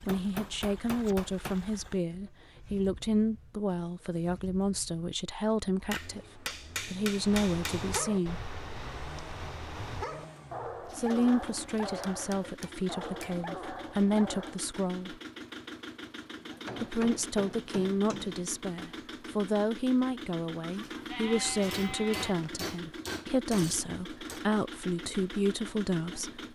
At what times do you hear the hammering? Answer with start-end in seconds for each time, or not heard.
0.1-1.6, 5.9-8.1, 11.8-13.4, 16.6-18.4, 21.4-24.4.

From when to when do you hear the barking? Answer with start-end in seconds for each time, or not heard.
7.1-14.7.